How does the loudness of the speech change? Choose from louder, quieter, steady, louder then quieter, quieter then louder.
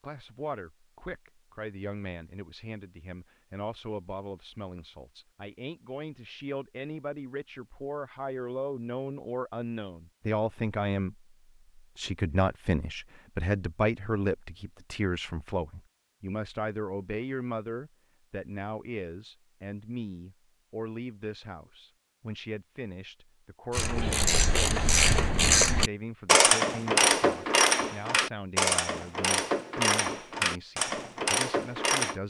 louder then quieter.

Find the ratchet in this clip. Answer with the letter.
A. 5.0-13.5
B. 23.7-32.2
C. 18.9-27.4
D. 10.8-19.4
B.